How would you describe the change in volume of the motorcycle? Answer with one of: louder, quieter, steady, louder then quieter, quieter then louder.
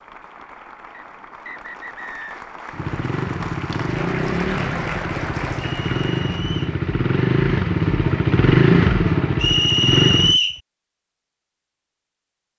louder.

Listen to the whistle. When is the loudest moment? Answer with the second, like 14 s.
10 s.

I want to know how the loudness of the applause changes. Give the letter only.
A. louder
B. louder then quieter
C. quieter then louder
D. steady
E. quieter
A.